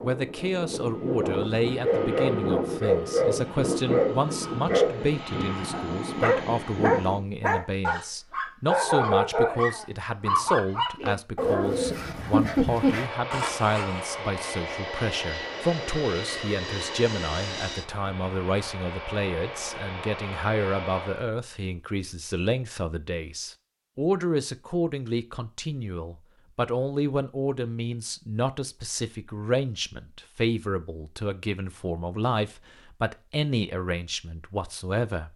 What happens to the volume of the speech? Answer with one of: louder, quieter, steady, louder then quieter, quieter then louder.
steady.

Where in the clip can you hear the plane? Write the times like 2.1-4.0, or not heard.
0.0-7.2, 12.7-21.2.